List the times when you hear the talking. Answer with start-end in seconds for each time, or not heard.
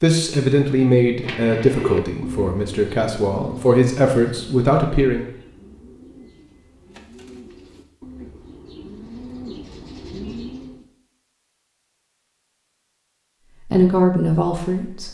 0.0-5.2, 13.7-15.0.